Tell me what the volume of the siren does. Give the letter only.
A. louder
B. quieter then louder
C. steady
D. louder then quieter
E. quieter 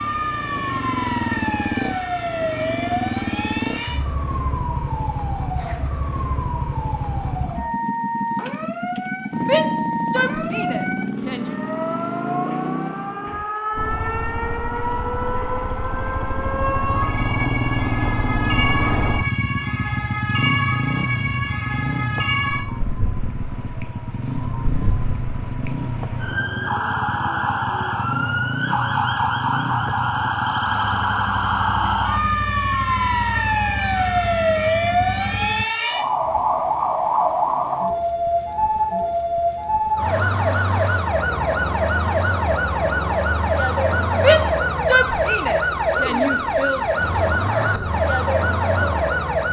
A.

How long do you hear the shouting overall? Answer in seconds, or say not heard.
5 s.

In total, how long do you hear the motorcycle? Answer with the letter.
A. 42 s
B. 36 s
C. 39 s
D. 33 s
B.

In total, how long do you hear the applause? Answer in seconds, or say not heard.
not heard.